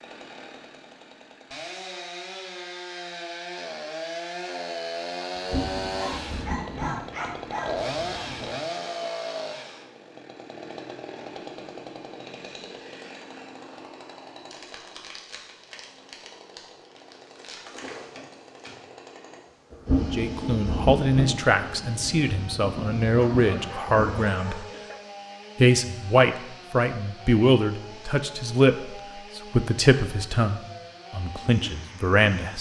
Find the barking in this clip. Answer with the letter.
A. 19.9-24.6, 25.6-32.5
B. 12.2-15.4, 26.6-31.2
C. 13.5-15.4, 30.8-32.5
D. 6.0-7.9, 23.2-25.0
D.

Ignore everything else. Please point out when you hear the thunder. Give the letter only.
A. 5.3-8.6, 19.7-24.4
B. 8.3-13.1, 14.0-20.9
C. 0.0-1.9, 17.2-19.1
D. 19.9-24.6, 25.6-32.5
A.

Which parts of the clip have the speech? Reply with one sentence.
You can hear the speech from 19.9 to 24.6 s and from 25.6 to 32.5 s.